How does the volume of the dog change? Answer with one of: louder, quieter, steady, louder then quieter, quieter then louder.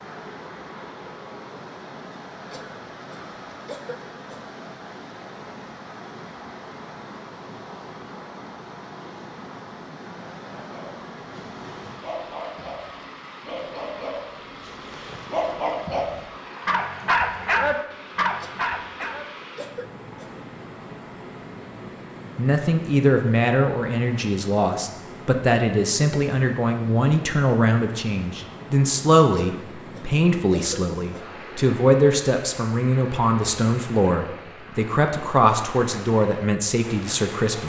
louder.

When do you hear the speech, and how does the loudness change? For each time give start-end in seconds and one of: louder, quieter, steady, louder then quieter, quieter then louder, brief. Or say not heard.
22.4-37.6 steady.